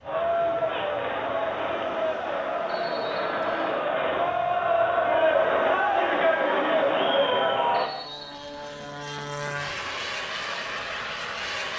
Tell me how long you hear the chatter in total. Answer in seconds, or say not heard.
8 s.